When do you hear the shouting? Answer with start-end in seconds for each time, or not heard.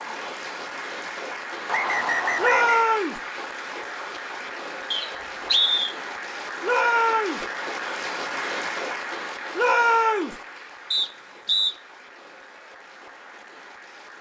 2.4-3.2, 6.6-7.5, 9.6-10.3.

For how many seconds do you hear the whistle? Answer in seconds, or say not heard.
3 s.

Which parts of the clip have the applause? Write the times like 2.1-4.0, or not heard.
0.0-14.1.